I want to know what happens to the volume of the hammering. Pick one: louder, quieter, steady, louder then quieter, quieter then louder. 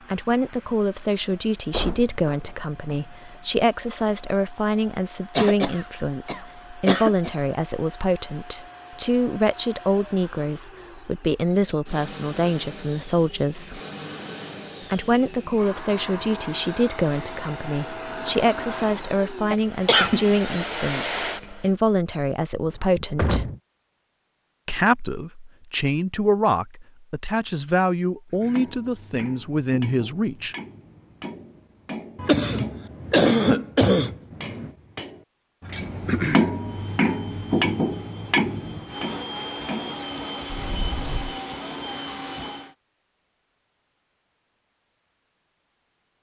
louder then quieter.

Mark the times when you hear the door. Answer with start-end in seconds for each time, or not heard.
1.7-2.8, 22.6-23.6, 40.5-41.4.